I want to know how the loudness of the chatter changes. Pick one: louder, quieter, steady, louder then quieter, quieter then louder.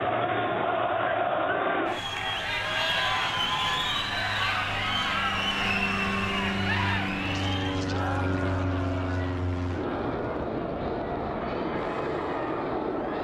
quieter.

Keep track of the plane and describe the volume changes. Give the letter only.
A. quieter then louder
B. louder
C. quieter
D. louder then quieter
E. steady
B.